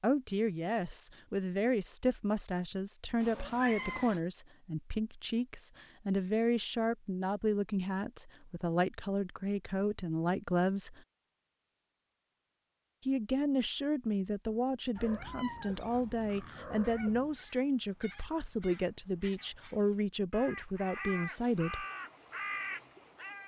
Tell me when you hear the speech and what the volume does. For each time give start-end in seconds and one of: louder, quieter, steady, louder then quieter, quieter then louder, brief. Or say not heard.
0.0-11.0 steady
13.1-21.9 steady.